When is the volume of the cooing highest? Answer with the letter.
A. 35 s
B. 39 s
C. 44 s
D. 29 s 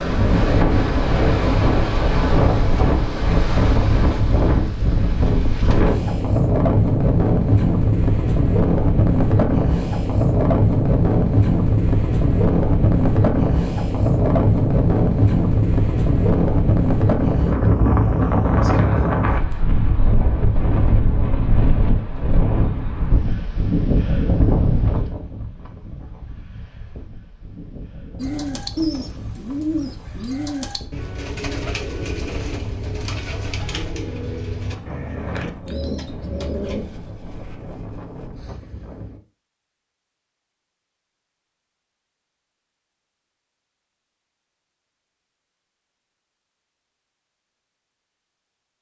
D.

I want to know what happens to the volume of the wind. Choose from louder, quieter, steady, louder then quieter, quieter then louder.
quieter.